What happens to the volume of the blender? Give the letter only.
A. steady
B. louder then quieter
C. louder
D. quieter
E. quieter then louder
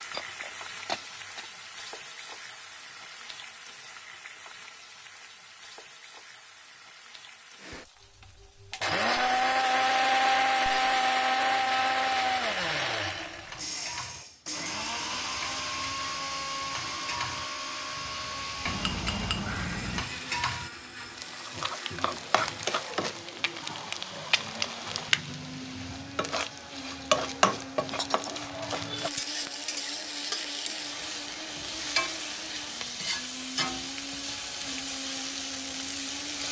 D.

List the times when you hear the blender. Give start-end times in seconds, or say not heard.
7.6-36.4.